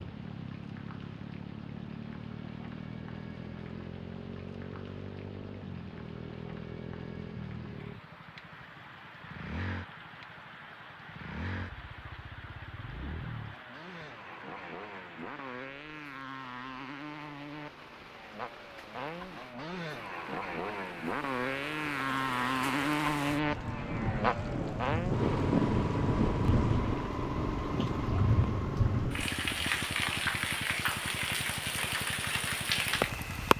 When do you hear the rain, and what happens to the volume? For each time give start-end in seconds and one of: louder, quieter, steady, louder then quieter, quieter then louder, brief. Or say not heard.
0.0-33.5 louder.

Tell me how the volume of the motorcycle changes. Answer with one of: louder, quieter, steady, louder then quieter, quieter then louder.
louder then quieter.